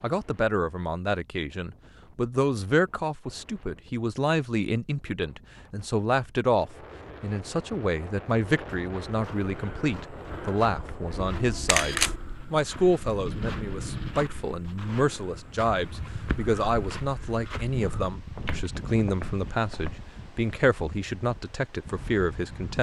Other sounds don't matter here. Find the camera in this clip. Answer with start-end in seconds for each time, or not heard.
11.1-12.2.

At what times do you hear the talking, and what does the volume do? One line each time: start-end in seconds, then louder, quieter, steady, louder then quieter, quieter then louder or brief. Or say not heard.
0.0-22.7 steady.